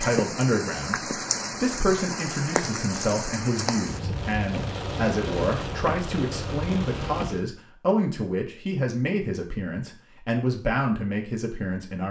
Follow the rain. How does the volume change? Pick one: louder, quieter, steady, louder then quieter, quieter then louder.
steady.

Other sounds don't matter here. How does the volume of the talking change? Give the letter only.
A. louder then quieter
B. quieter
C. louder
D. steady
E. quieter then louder
D.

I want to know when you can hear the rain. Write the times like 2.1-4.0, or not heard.
0.0-7.5.